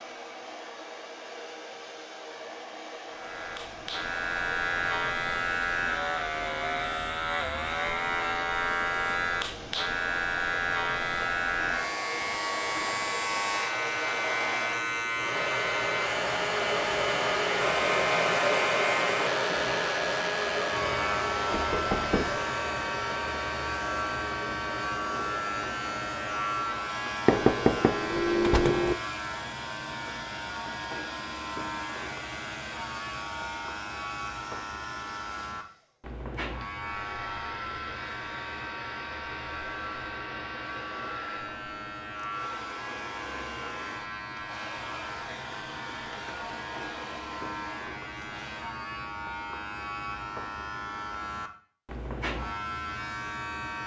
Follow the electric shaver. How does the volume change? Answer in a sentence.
The loudness of the electric shaver goes down.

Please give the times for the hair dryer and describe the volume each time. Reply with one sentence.
You can hear the hair dryer from 0.0 to 48.7 s, getting louder then quieter.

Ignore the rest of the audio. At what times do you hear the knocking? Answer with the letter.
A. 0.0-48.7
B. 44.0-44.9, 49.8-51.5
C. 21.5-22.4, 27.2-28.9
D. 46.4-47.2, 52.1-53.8
C.